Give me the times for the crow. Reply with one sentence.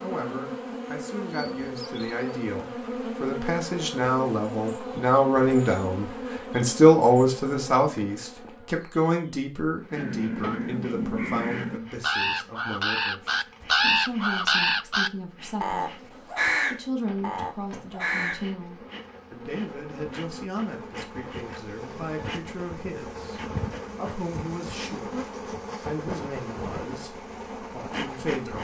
The crow can be heard from 9.9 to 18.4 s.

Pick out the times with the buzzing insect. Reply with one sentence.
The buzzing insect can be heard from 0.0 to 28.5 s.